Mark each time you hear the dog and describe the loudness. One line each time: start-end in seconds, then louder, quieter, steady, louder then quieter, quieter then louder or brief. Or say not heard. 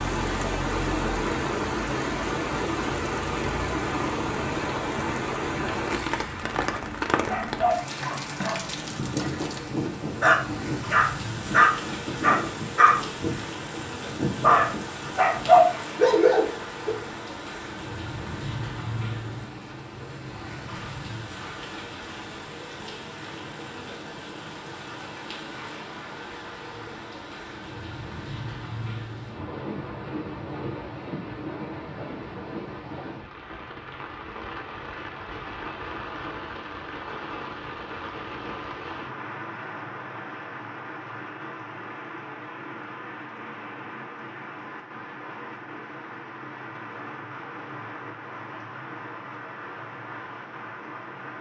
6.7-16.9 louder.